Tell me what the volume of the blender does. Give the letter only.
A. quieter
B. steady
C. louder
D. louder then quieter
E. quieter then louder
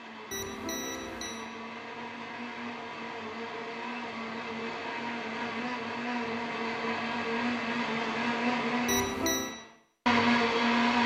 C.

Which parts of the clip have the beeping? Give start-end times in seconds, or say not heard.
0.3-1.4, 8.8-9.6.